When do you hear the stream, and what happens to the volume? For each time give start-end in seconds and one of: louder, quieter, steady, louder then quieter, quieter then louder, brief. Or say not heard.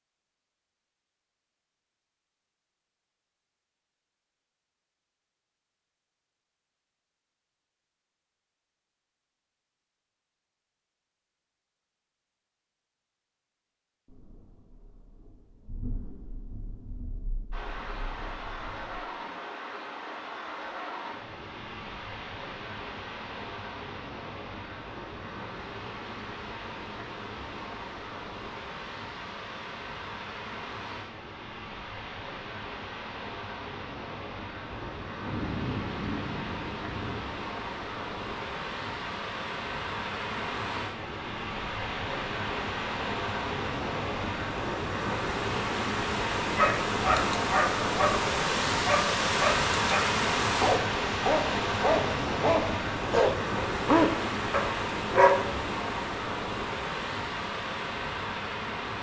17.5-58.9 louder.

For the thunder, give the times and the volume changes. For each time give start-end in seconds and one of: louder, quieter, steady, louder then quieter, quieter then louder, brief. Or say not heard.
14.1-19.1 louder then quieter
34.6-37.2 brief.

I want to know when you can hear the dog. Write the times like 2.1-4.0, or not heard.
46.5-55.5.